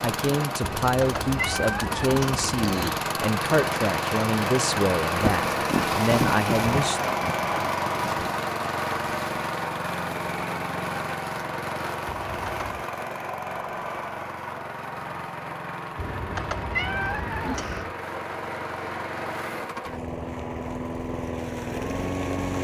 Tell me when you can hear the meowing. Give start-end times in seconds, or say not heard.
0.6-2.9, 12.1-12.8, 15.9-17.9.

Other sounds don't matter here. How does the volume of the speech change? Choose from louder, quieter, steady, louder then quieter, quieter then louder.
steady.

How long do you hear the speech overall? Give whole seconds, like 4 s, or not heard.
7 s.